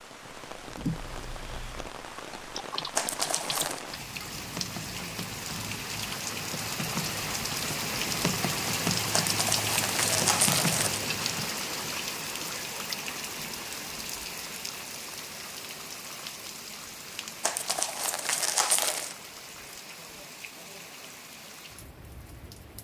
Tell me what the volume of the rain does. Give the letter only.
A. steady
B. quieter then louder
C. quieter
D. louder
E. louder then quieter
E.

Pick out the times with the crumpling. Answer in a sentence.
The crumpling can be heard from 3.0 to 3.9 s, from 9.1 to 11.0 s and from 17.4 to 19.1 s.